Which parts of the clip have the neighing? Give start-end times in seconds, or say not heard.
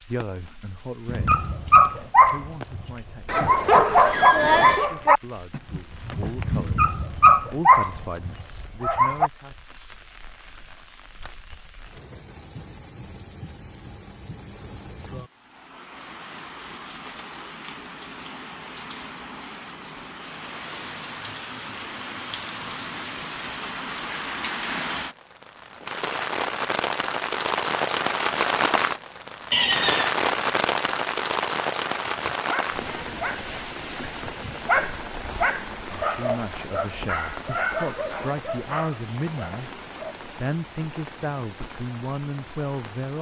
3.2-4.9, 29.5-30.1.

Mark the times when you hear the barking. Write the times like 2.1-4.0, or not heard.
1.1-9.3, 32.0-40.1.